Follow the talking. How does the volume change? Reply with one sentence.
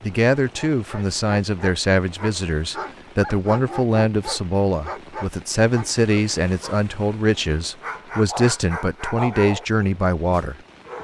The loudness of the talking stays about the same.